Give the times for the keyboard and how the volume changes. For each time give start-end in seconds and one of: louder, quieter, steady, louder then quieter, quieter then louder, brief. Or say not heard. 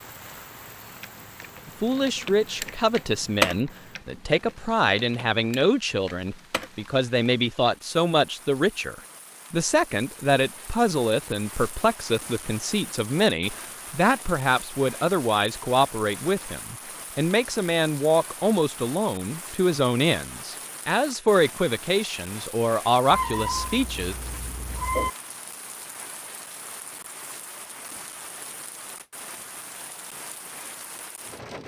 0.8-6.9 louder then quieter.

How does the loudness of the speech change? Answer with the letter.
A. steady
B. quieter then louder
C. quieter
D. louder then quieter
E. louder
A.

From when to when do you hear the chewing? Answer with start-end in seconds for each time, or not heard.
not heard.